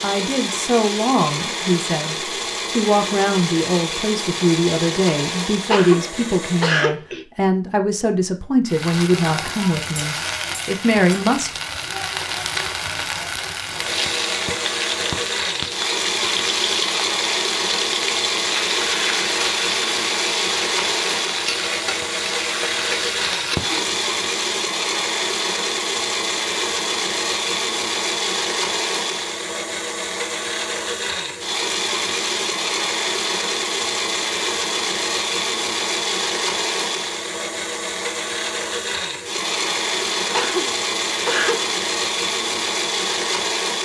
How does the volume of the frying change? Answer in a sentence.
The loudness of the frying stays about the same.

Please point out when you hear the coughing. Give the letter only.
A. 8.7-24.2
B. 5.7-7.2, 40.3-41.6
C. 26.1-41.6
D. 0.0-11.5
B.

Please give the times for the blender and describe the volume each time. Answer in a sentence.
You can hear the blender from 0.0 to 6.8 s, at a steady volume; and from 13.7 to 43.7 s, at a steady volume.